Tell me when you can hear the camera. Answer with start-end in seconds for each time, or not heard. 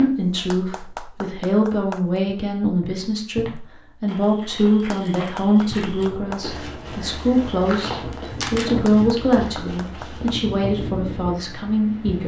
8.2-8.7.